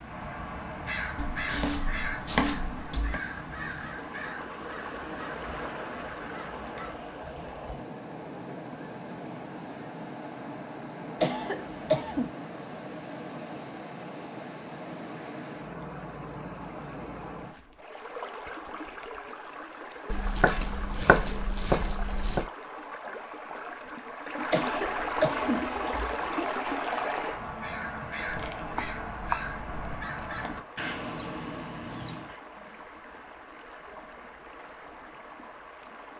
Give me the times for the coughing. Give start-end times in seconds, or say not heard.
11.2-12.3, 24.5-26.1.